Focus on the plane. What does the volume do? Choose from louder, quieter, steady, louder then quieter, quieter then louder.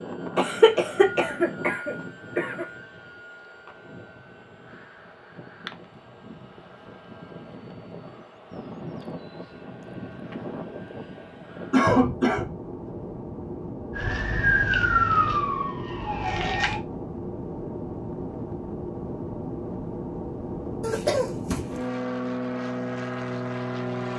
louder.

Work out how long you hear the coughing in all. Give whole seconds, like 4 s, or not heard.
4 s.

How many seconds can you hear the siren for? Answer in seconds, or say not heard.
3 s.